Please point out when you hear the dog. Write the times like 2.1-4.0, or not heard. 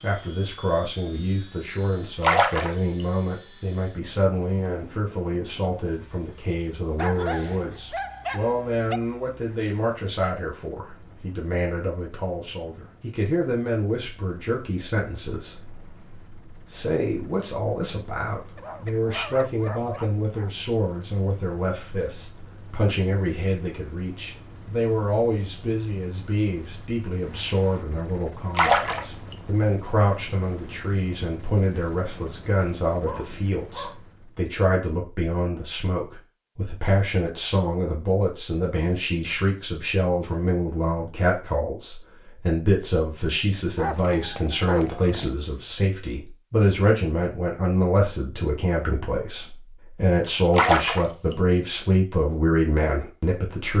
7.0-9.0, 18.6-20.5, 33.0-34.0, 43.8-45.4.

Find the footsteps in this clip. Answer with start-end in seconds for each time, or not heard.
not heard.